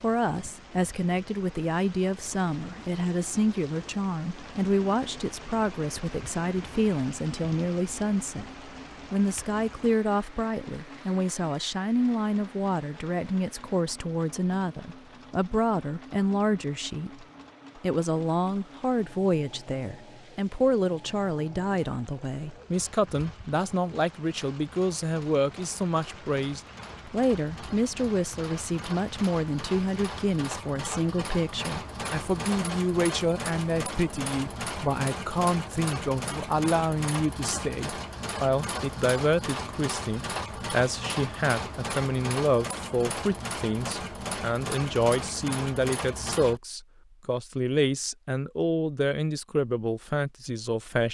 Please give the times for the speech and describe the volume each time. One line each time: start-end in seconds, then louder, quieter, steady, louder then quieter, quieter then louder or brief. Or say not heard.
0.0-51.0 steady.